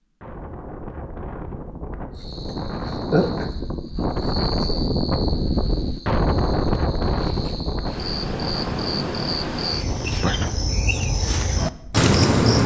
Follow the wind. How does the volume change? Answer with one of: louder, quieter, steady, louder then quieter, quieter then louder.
louder then quieter.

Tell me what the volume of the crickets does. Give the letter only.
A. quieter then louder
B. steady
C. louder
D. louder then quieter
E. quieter
A.